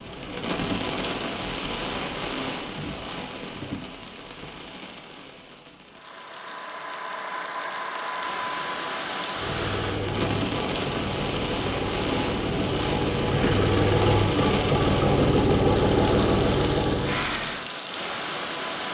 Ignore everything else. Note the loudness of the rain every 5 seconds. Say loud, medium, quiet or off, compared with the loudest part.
loud, medium, loud, loud.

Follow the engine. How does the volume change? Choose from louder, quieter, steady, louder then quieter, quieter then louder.
louder.